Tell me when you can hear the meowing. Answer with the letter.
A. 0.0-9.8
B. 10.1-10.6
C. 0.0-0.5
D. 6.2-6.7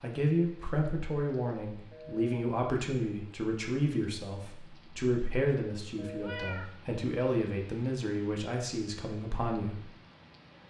D.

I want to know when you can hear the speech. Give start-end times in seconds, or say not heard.
0.0-9.8.